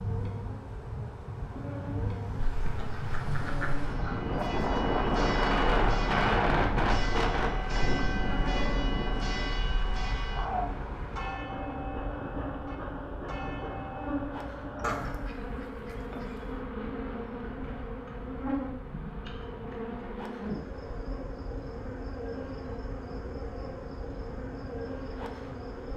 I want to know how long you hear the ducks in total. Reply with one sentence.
You can hear the ducks for 3 seconds altogether.